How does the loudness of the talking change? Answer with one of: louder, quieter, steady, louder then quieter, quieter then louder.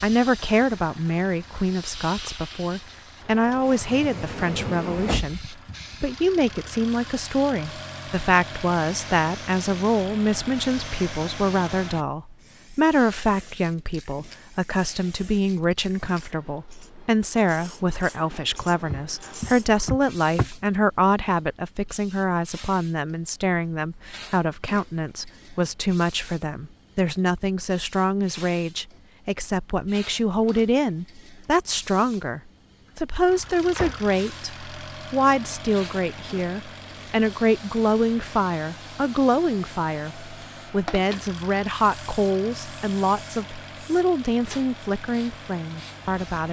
steady.